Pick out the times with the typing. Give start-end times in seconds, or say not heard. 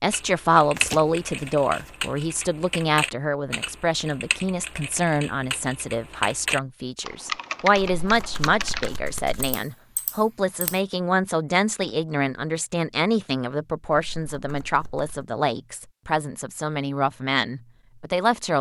0.1-10.8.